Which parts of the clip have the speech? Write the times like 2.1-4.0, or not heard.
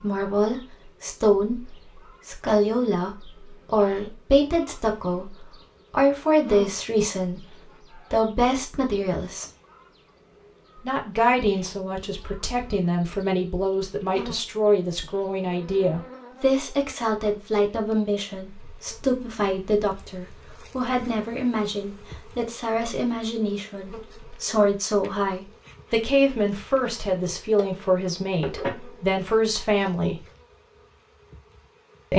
0.0-7.5, 8.1-9.4, 10.8-30.2.